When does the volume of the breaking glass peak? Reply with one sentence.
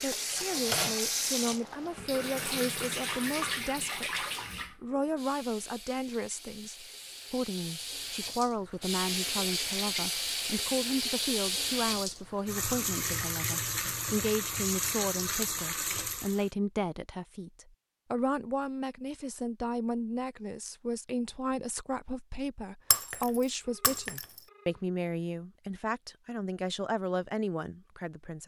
The loudest moment of the breaking glass is at 23 seconds.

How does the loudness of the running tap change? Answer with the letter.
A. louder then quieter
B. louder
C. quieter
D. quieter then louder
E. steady
D.